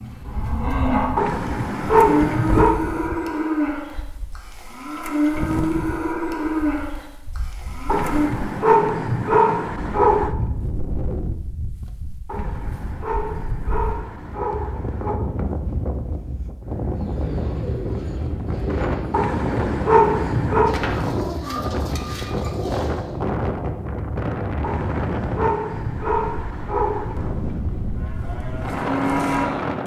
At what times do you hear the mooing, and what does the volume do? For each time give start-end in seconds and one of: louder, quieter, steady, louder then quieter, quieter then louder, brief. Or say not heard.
0.0-8.3 steady
27.9-29.8 brief.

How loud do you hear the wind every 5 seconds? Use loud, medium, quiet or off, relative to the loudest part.
medium, medium, medium, loud, loud, loud.